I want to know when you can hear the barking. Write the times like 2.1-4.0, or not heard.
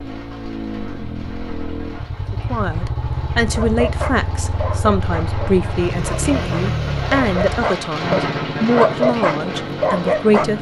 3.5-10.5.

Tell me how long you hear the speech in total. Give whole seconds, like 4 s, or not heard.
8 s.